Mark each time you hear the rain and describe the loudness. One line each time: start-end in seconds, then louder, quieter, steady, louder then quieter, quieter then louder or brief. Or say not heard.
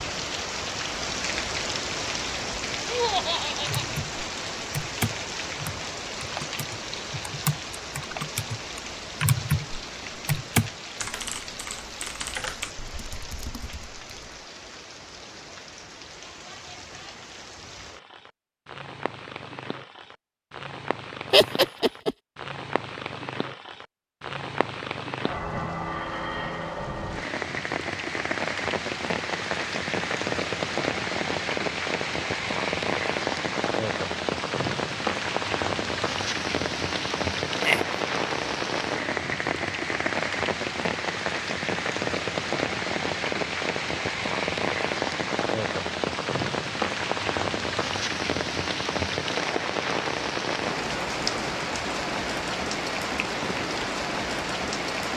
0.0-55.1 quieter then louder.